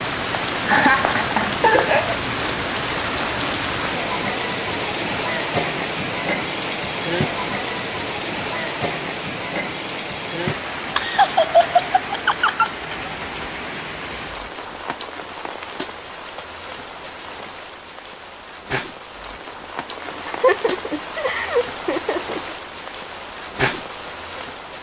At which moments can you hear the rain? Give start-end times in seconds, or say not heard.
0.0-24.7.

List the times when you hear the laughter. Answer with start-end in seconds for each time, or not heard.
0.7-2.2, 10.9-12.8, 20.1-22.4.